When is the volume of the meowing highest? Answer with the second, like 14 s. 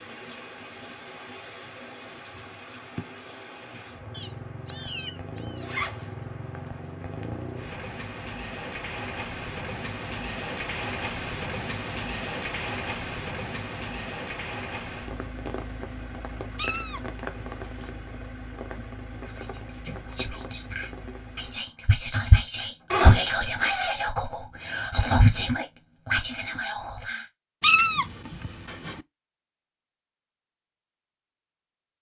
28 s.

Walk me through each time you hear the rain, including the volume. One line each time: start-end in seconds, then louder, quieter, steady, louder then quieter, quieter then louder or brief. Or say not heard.
0.0-21.6 louder then quieter.